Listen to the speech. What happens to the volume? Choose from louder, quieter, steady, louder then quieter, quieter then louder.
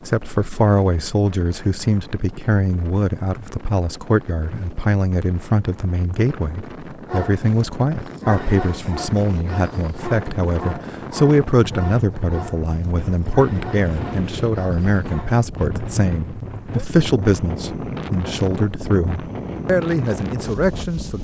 steady.